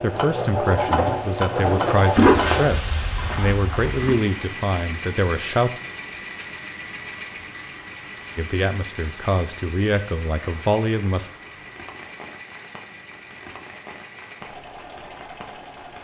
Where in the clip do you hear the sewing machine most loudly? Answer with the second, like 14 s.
1 s.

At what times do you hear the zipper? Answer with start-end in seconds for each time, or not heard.
2.1-4.2.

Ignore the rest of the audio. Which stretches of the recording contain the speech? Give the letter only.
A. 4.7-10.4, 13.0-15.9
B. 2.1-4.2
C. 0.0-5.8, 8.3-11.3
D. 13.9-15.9
C.